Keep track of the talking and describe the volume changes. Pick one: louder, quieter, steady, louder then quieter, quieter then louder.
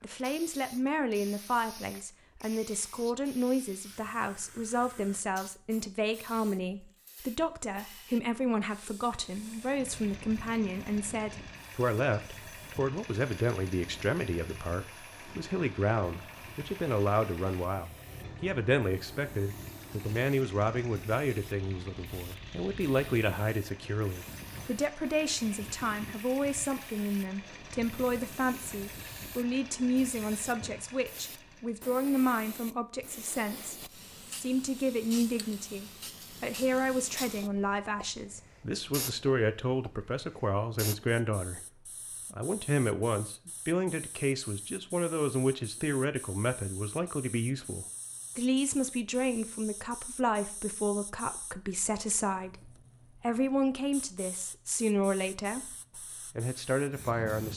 steady.